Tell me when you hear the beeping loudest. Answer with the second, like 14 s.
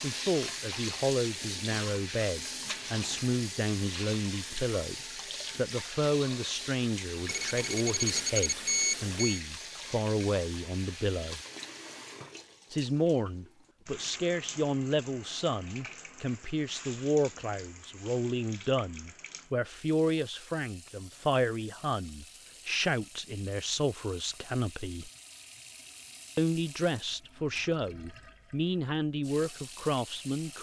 9 s.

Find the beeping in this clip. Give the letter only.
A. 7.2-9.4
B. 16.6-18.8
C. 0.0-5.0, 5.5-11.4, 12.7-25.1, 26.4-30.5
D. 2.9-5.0
A.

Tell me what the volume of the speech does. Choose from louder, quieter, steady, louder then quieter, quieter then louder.
steady.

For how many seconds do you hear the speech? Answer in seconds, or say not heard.
27 s.